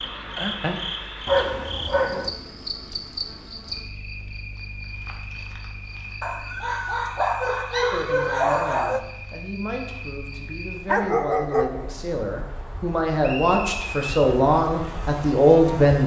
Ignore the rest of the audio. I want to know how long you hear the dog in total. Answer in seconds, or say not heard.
5 s.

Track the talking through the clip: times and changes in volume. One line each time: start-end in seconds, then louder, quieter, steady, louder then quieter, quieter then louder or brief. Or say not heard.
7.9-16.0 louder.